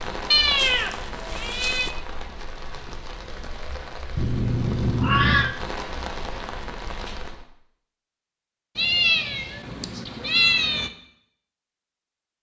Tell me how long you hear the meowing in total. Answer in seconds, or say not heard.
5 s.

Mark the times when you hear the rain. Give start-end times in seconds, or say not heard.
0.0-7.5.